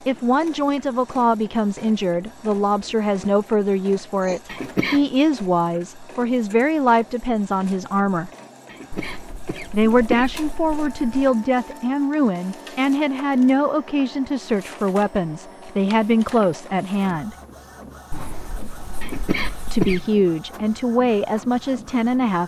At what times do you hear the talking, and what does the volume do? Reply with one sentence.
The talking can be heard from 0.1 to 8.3 s, at a steady volume; from 9.7 to 17.4 s, at a steady volume; and briefly from 19.6 to 22.4 s.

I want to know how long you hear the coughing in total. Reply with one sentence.
You can hear the coughing for 3 seconds altogether.